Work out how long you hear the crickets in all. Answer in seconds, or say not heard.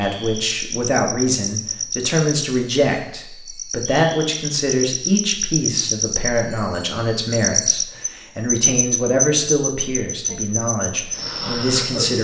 12 s.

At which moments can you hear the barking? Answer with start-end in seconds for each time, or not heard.
not heard.